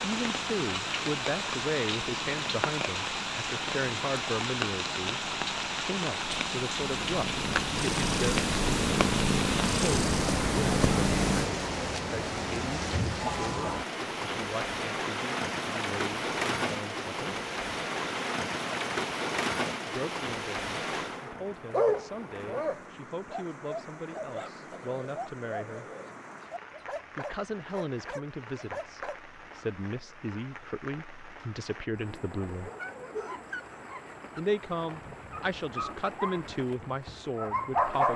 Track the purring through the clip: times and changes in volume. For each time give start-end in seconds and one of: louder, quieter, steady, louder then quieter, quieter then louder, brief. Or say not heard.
0.0-11.5 louder.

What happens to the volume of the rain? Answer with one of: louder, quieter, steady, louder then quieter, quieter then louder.
quieter.